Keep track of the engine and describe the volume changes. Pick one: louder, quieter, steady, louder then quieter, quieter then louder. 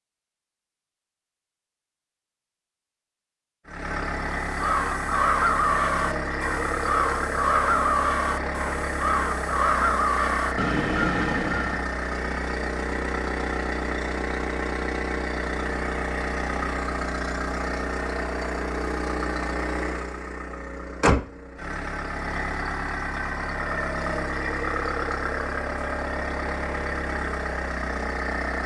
steady.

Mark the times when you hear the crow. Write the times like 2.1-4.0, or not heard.
4.5-11.8.